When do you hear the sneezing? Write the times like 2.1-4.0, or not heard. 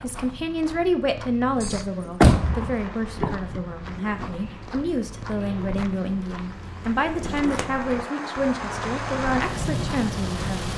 not heard.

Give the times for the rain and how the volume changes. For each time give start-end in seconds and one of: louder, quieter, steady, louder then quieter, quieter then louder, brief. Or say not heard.
2.3-10.7 quieter then louder.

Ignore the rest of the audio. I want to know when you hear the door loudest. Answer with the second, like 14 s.
2 s.